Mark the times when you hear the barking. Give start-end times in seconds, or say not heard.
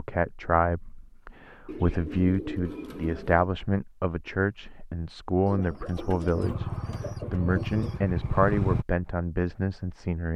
not heard.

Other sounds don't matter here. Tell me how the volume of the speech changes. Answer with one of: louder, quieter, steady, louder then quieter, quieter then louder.
steady.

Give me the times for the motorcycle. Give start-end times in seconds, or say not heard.
6.3-8.8.